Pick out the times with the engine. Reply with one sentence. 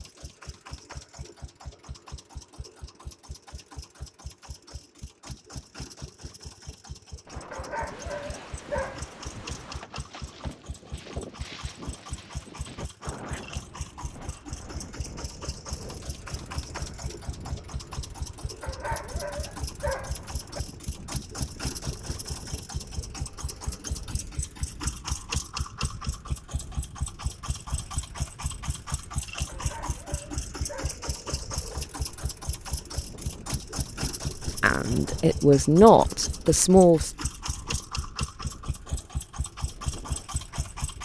The engine can be heard from 0.0 to 41.0 s.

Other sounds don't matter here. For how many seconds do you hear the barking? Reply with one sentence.
The barking can be heard for 5 seconds in total.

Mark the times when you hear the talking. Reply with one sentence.
The talking can be heard from 34.5 to 37.1 s.